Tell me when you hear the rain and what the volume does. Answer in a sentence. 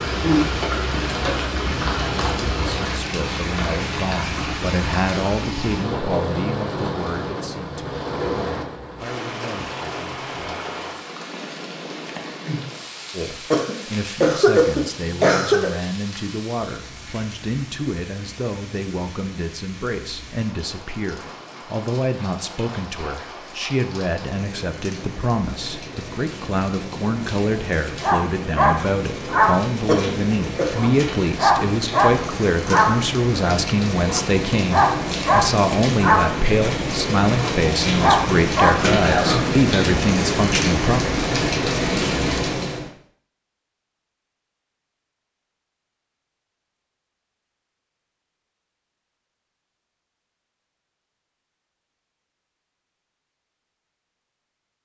You can hear the rain from 0.0 to 42.9 s, getting quieter then louder.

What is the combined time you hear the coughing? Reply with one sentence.
You can hear the coughing for 4 seconds altogether.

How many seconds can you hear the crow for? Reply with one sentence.
You can't hear the crow here.